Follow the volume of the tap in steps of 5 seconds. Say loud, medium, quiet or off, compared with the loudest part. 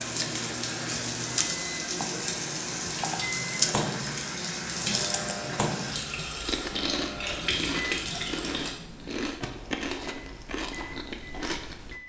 loud, loud, off.